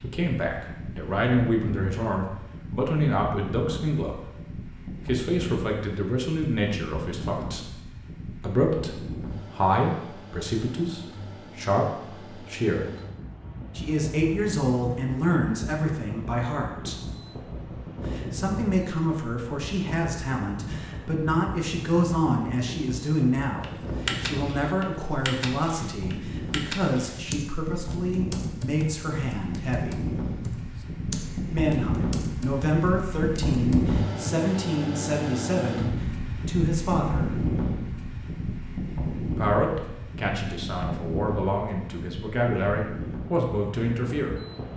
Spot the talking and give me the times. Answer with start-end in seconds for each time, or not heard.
0.0-4.4, 5.0-7.8, 8.3-12.9, 13.8-30.1, 31.5-37.5, 39.4-44.4.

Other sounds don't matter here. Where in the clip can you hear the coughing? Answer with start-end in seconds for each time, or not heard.
not heard.